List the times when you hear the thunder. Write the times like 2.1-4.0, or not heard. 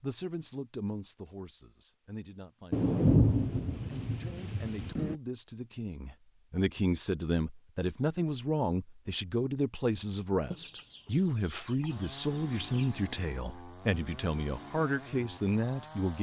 2.7-5.2.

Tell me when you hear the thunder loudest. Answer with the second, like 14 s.
3 s.